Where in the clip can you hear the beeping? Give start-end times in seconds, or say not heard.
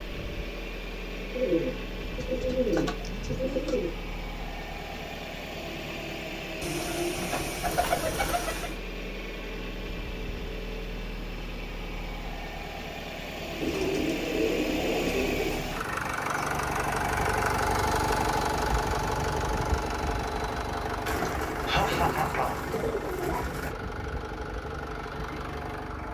not heard.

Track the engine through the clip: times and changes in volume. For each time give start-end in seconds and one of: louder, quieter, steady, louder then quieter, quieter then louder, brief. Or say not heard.
0.0-26.0 louder then quieter.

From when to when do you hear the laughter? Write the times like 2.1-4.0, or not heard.
21.2-22.6.